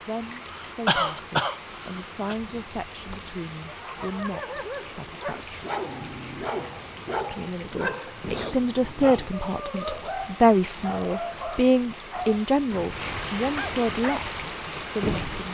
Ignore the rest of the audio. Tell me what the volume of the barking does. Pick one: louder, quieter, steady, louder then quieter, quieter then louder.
steady.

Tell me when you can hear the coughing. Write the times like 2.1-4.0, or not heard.
0.4-2.4.